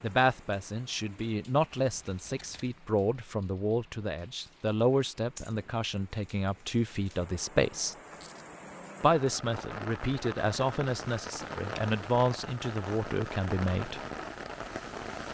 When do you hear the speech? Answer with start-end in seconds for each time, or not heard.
0.0-8.0, 9.0-14.0.